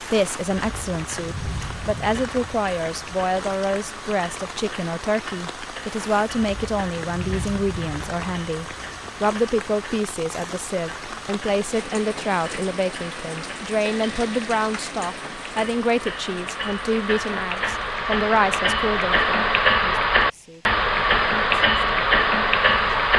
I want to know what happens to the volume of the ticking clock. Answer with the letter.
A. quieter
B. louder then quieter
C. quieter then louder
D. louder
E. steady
D.